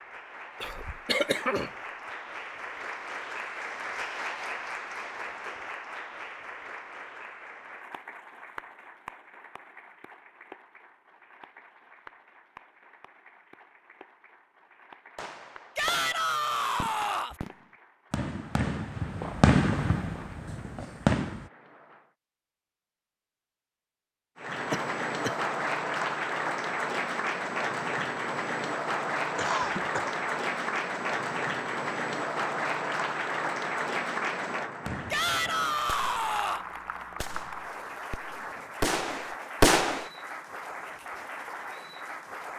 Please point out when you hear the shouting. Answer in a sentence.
The shouting can be heard from 15.8 to 17.4 s and from 35.1 to 36.6 s.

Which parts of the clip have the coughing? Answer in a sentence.
The coughing can be heard from 0.6 to 1.7 s, from 24.7 to 25.4 s and from 29.4 to 30.2 s.